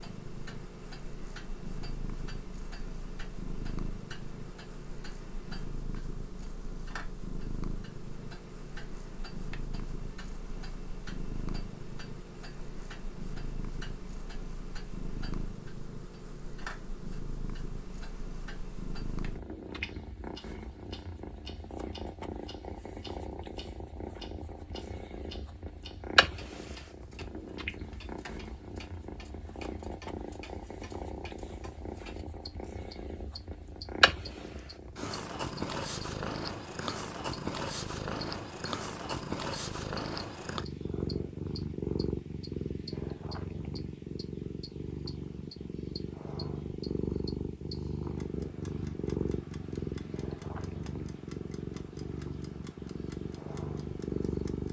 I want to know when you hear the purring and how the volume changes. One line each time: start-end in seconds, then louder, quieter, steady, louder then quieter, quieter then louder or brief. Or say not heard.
0.0-54.6 louder.